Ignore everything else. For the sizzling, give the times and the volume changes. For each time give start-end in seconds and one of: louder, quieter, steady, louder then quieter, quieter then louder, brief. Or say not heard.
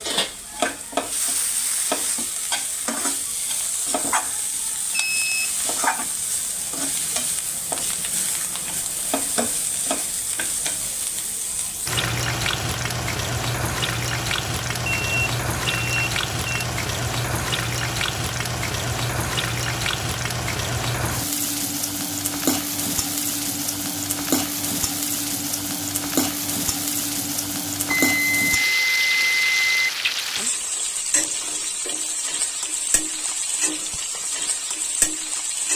0.0-35.7 steady.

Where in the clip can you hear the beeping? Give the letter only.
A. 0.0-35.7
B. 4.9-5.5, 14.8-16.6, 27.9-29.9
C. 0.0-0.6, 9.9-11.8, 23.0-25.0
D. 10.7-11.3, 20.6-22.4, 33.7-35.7
B.